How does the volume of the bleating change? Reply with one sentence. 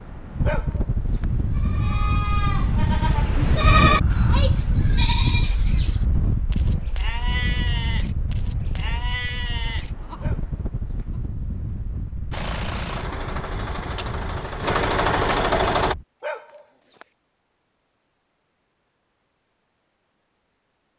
The loudness of the bleating goes up, then down.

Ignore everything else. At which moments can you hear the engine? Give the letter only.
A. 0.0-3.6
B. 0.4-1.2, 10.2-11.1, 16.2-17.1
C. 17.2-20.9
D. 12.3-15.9
D.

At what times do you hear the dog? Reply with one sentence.
You can hear the dog from 0.4 to 1.2 s, from 10.2 to 11.1 s and from 16.2 to 17.1 s.